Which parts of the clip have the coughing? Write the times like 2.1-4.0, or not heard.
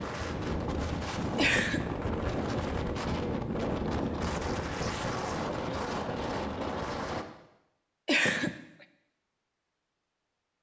1.4-1.9, 8.1-8.5.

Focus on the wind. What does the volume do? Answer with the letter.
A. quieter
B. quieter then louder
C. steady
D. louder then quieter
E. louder
C.